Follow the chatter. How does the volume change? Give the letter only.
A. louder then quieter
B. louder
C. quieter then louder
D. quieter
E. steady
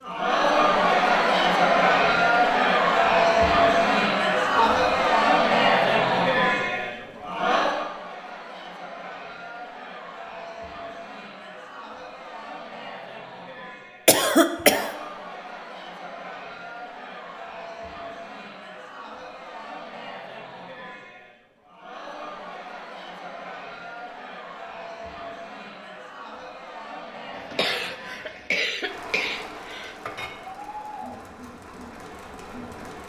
D.